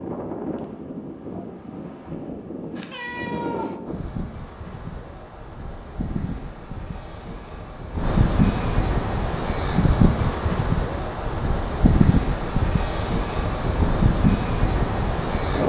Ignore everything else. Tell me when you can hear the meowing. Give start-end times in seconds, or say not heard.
2.9-3.8.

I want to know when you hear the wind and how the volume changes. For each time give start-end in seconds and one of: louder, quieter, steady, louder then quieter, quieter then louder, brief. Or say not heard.
0.0-15.6 louder.